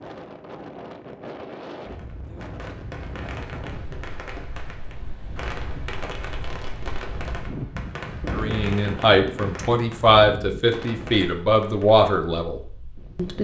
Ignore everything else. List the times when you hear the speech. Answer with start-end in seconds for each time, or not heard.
8.3-13.4.